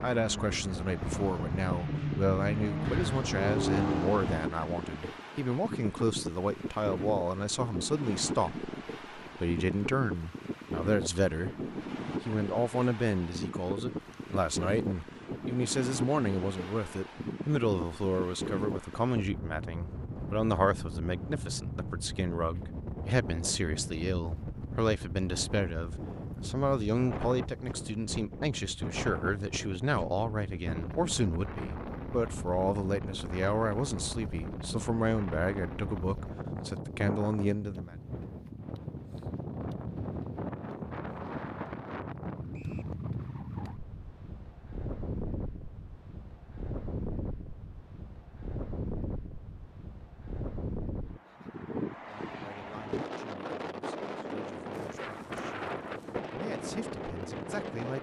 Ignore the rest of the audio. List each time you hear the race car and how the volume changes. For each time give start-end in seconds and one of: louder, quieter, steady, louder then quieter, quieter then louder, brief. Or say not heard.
0.0-4.4 louder.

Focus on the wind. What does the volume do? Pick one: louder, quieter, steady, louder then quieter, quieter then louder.
steady.